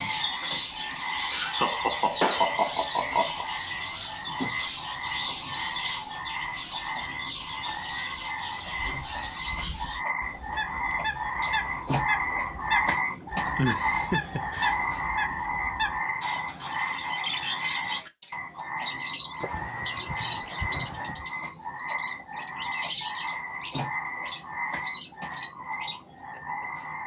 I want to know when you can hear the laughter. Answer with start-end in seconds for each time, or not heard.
0.9-3.5, 13.6-14.8, 19.4-21.2.